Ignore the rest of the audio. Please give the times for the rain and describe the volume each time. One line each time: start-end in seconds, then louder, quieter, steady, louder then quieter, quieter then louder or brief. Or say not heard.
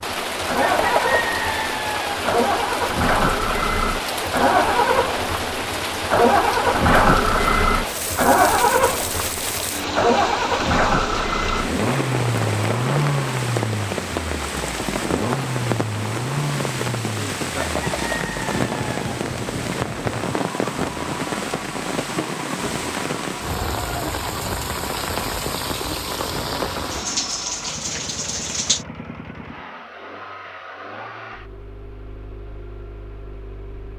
0.0-28.9 steady.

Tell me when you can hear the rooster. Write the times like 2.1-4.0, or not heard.
0.7-2.2, 17.6-18.9.